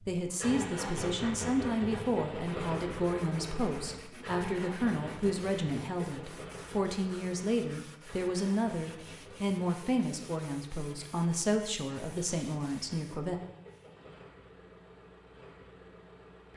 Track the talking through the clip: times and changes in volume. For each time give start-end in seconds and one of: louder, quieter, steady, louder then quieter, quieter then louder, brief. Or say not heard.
0.0-13.4 steady.